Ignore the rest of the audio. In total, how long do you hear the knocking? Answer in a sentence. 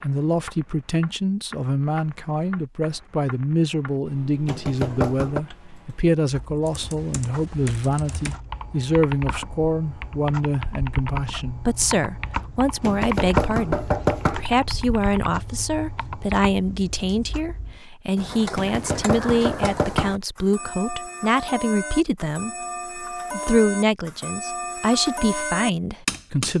The knocking can be heard for 4 seconds in total.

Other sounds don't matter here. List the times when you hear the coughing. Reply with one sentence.
You can't hear the coughing here.